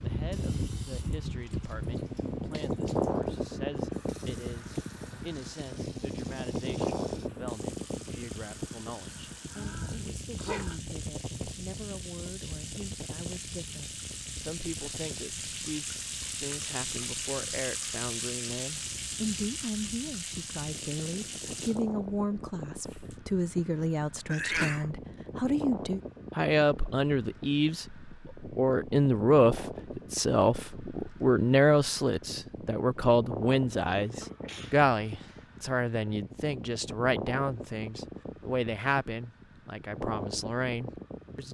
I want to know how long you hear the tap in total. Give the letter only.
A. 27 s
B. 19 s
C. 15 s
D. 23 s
D.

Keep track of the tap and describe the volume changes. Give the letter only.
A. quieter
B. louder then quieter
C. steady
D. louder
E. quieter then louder
D.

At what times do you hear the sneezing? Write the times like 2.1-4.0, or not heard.
9.5-10.8, 24.2-24.9, 33.9-35.5.